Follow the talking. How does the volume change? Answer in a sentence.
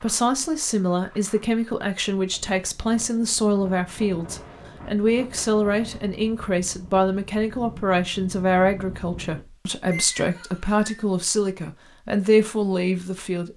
The volume of the talking stays about the same.